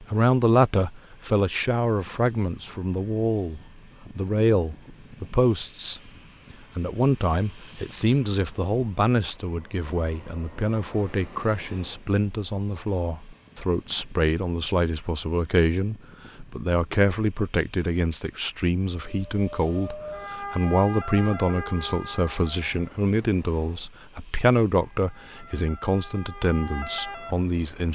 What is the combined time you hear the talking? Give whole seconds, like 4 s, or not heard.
28 s.